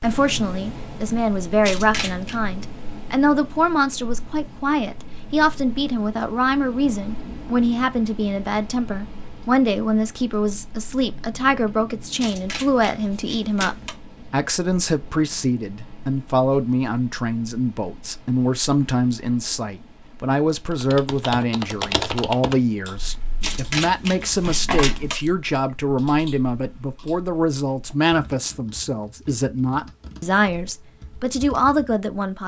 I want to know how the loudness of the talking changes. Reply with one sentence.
The volume of the talking stays about the same.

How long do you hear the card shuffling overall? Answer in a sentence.
You can hear the card shuffling for 4 seconds altogether.